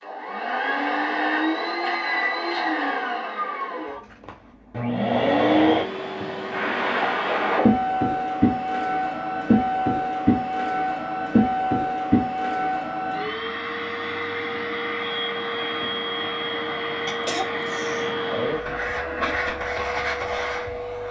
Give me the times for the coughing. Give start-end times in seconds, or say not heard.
17.1-18.1.